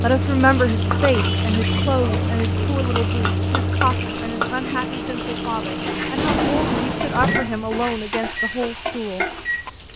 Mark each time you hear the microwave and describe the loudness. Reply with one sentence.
You can hear the microwave from 0.0 to 9.9 s, getting quieter.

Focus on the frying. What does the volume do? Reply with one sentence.
The volume of the frying stays about the same.